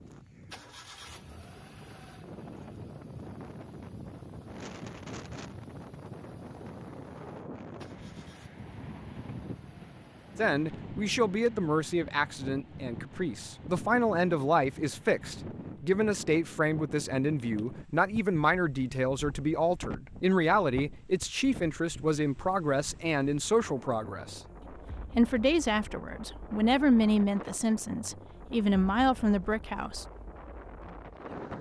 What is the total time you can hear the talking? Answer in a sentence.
The talking can be heard for 19 seconds in total.